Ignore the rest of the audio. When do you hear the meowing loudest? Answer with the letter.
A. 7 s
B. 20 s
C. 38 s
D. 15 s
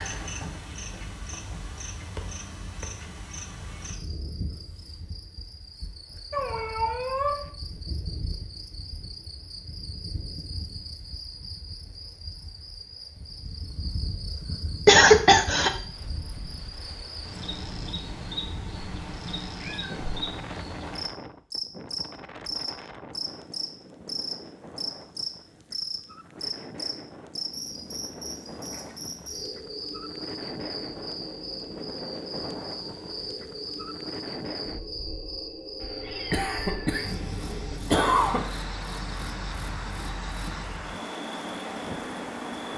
A.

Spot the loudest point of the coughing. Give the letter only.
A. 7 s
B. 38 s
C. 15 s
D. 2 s
C.